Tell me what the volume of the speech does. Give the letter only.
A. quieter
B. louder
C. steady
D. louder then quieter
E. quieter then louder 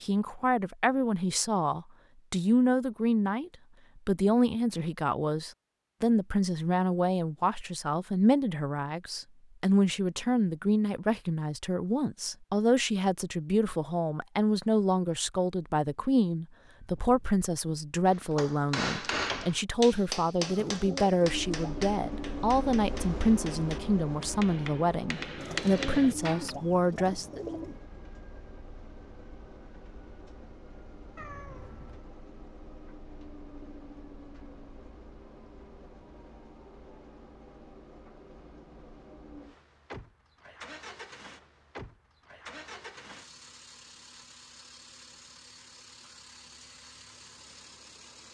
C.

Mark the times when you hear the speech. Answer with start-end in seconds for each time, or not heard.
0.0-27.4.